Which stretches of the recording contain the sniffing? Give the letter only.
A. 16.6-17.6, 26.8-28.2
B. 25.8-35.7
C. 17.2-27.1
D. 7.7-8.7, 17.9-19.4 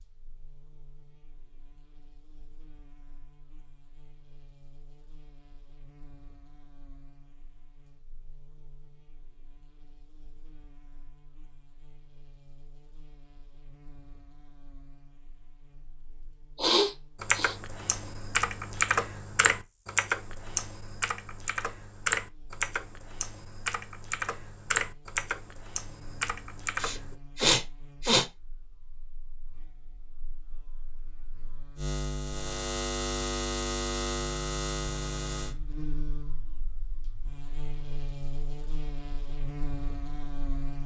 A.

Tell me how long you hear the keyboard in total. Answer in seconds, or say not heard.
10 s.